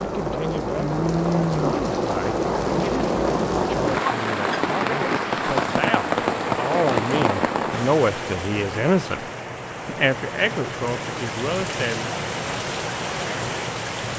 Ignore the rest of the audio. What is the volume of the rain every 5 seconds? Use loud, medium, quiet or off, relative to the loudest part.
loud, loud, medium.